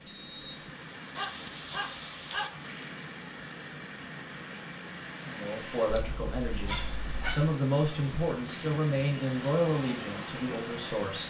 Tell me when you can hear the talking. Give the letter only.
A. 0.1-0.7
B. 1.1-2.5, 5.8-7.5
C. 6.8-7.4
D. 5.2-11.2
D.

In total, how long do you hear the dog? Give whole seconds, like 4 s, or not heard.
3 s.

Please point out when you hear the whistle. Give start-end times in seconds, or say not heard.
0.1-0.7.